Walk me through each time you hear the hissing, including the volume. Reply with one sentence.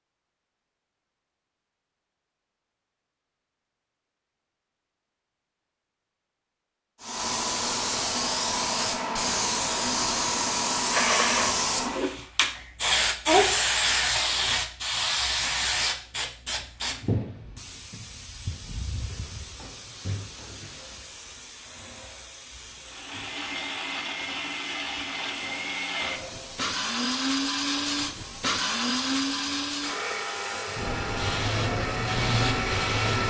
You can hear the hissing from 7.0 to 33.2 s, getting quieter then louder.